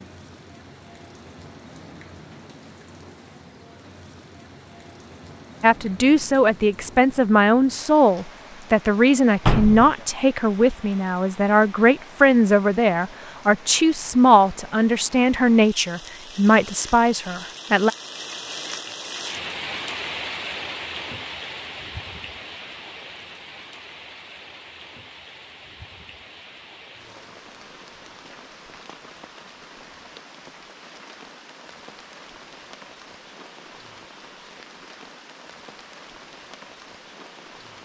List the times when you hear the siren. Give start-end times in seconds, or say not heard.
not heard.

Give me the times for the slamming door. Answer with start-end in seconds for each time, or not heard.
9.4-9.9.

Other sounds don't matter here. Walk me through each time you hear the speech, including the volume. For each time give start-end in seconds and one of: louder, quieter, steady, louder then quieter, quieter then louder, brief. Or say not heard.
5.6-17.9 steady.